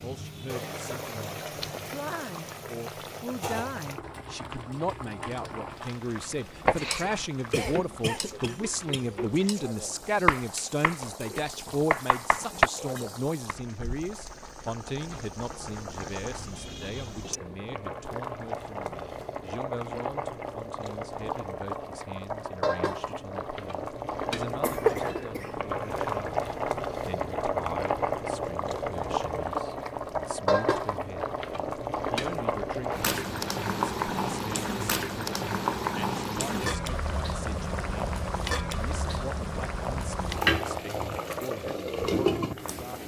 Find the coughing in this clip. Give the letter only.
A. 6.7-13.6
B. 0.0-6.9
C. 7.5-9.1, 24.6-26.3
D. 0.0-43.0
C.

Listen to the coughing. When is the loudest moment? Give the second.
25 s.